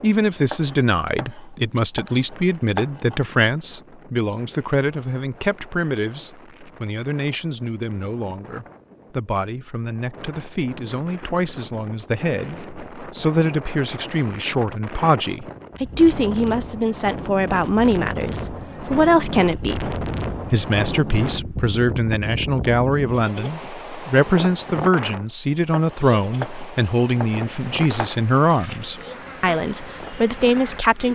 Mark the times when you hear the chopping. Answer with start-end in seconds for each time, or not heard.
0.5-3.2, 25.7-28.2.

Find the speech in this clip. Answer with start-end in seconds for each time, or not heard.
0.0-31.1.